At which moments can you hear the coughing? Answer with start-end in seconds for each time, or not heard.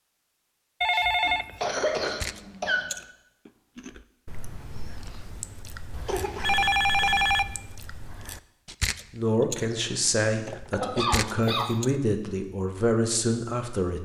1.2-2.9, 6.0-7.2, 10.8-11.7.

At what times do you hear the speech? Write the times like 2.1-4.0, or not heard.
9.1-14.0.